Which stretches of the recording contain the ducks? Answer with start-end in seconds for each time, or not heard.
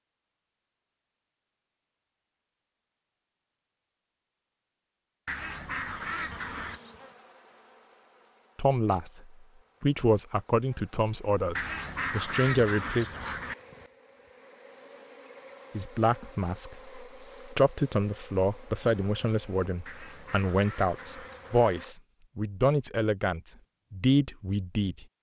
5.2-6.8, 11.6-13.6, 19.9-21.9.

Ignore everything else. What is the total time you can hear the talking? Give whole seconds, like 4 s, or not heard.
13 s.